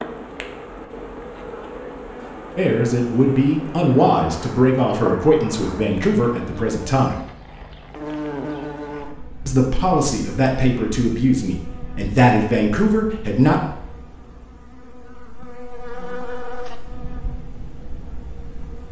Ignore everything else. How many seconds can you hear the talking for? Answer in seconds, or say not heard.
9 s.